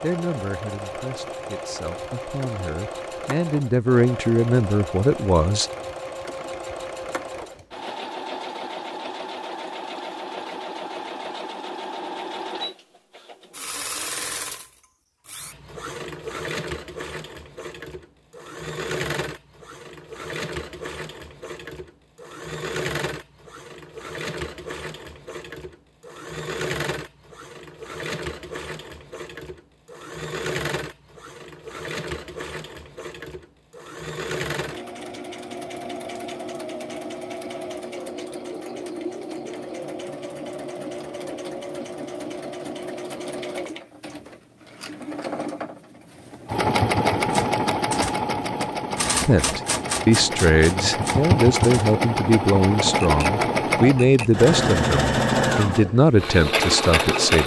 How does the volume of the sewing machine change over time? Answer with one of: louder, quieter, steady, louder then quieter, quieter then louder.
louder.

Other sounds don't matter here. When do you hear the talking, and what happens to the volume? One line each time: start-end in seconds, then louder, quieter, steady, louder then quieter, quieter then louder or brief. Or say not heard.
0.0-5.7 louder
49.2-57.4 steady.